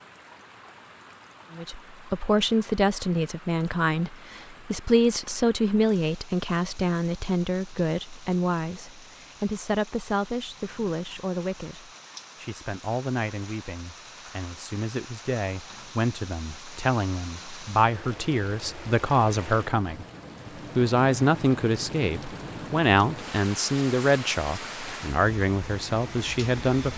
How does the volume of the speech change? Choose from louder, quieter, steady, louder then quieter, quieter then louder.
quieter then louder.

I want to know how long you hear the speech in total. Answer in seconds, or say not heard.
25 s.